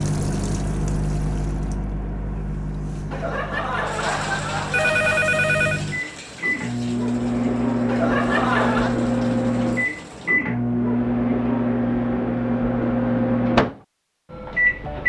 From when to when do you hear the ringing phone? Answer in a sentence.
You can hear the ringing phone from 3.1 to 5.8 s and from 7.8 to 8.9 s.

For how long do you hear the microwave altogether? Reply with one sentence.
You can hear the microwave for 15 seconds altogether.